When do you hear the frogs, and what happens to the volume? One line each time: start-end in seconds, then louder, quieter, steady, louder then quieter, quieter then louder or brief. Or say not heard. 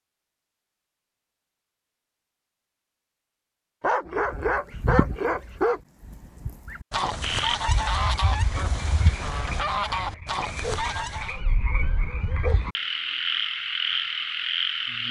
7.2-15.0 louder.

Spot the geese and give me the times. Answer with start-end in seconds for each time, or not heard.
4.0-11.4.